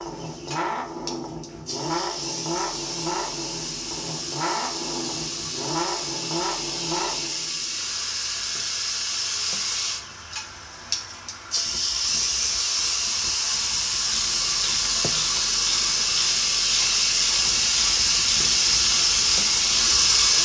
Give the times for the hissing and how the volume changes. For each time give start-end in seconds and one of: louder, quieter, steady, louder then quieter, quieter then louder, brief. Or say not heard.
0.0-20.4 louder.